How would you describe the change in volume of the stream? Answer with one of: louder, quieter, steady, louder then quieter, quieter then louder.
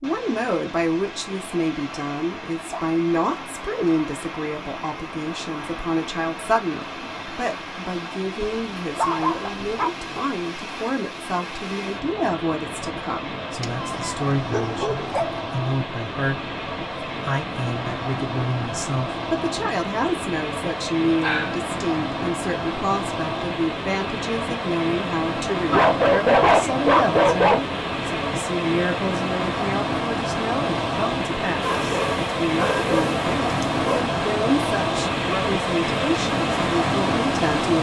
louder.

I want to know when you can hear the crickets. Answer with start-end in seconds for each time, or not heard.
not heard.